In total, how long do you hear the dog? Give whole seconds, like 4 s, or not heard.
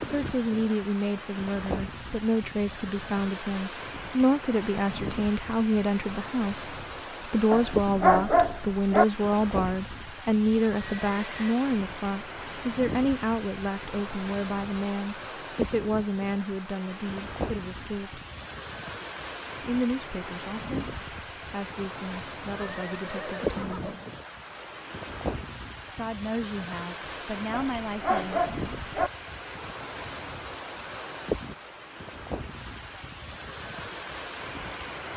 3 s.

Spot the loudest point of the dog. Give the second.
8 s.